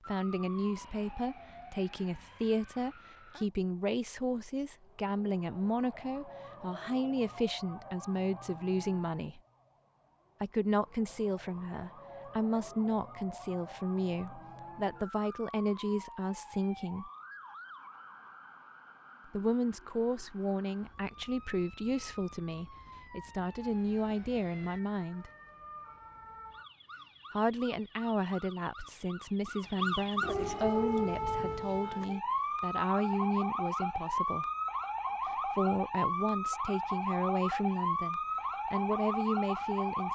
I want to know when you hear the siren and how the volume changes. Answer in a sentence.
You can hear the siren from 0.0 to 40.0 s, getting louder.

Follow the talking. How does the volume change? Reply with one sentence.
The loudness of the talking stays about the same.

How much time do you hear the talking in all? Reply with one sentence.
The talking can be heard for 34 seconds in total.